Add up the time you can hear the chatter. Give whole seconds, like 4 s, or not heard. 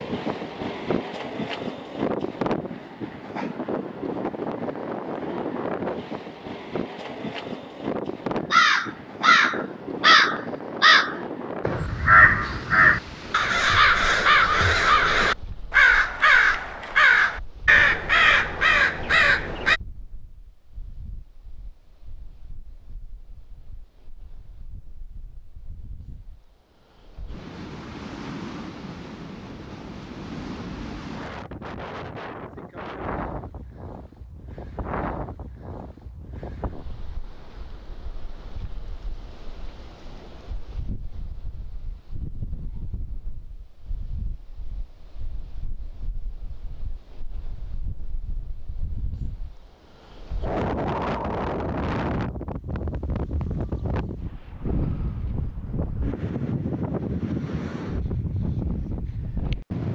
not heard.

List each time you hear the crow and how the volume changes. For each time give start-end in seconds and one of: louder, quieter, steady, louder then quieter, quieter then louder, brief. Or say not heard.
8.5-19.8 steady.